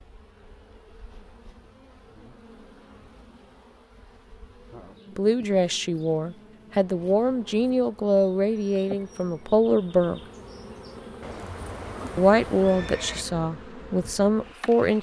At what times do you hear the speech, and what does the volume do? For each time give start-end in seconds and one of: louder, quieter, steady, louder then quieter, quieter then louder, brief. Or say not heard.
5.2-10.2 steady
12.2-14.9 brief.